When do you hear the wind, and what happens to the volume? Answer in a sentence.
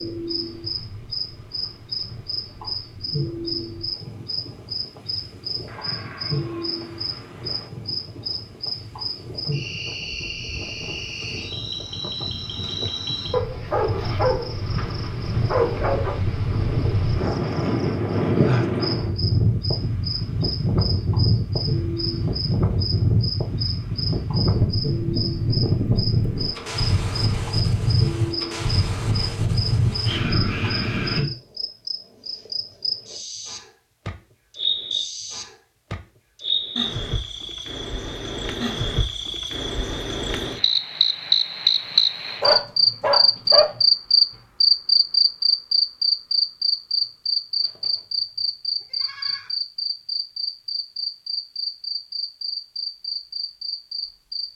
You can hear the wind from 0.0 to 31.2 s, getting louder.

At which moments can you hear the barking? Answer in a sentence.
The barking can be heard from 13.3 to 16.1 s and from 42.4 to 43.8 s.